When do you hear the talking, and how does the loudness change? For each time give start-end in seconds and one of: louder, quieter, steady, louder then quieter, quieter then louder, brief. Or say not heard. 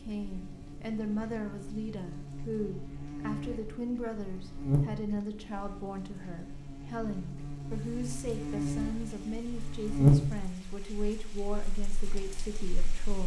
0.0-13.2 steady.